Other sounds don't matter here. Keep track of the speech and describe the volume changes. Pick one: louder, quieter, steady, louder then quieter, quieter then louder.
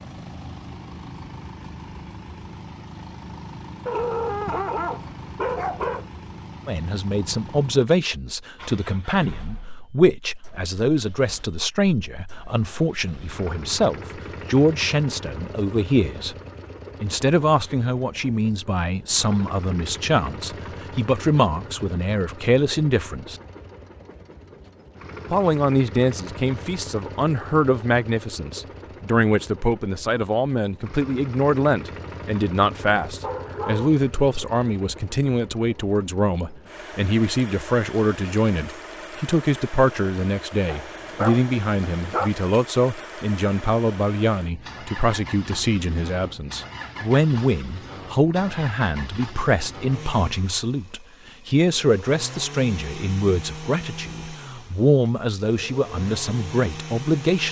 steady.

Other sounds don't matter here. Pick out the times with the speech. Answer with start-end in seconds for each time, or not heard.
6.7-16.4, 17.0-23.4, 25.3-57.4.